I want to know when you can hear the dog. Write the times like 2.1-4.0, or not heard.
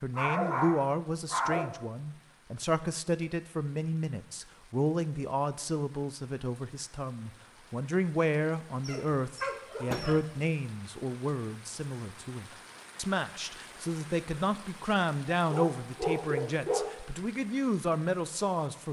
0.1-1.7, 8.8-10.4, 15.5-16.9.